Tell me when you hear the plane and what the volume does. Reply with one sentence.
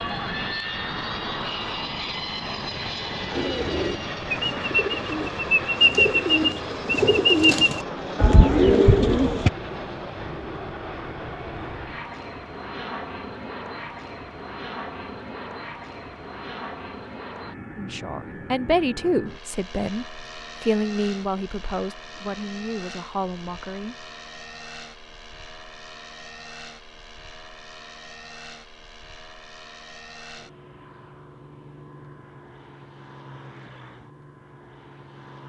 You can hear the plane from 0.0 to 35.4 s, getting quieter.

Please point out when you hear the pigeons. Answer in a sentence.
You can hear the pigeons from 3.3 to 9.5 s.